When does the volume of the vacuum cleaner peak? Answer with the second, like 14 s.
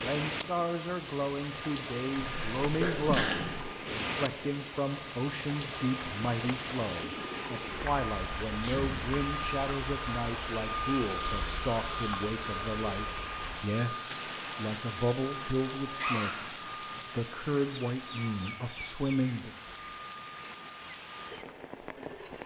11 s.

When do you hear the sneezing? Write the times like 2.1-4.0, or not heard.
2.3-3.6, 8.6-9.1, 15.9-16.4.